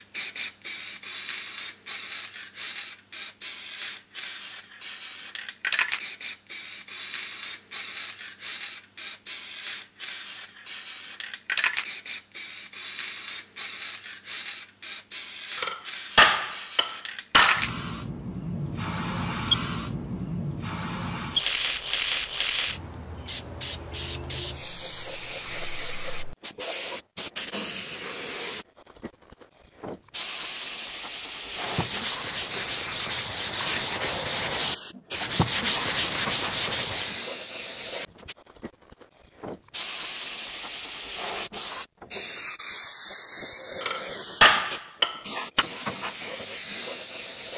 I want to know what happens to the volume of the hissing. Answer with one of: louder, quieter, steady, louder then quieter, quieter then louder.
steady.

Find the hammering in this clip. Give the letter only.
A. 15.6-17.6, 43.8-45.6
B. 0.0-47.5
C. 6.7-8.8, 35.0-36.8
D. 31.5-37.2
A.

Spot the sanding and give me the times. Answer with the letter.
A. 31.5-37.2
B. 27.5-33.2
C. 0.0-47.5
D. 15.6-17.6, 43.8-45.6
A.